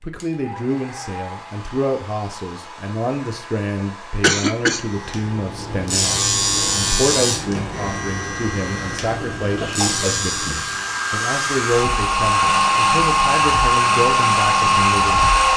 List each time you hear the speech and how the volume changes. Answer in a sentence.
You can hear the speech from 0.0 to 15.3 s, at a steady volume.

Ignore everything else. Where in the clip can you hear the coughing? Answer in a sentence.
The coughing can be heard from 4.2 to 4.8 s and from 9.6 to 10.6 s.